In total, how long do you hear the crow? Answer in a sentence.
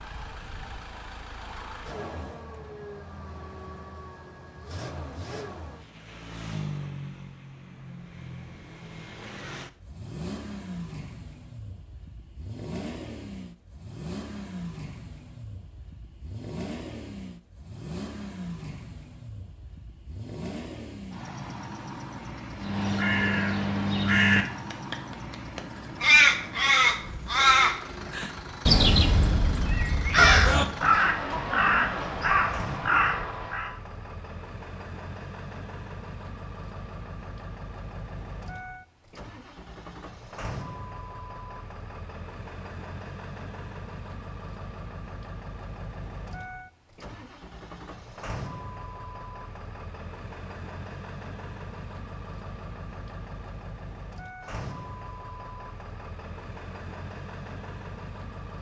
The crow can be heard for 11 seconds in total.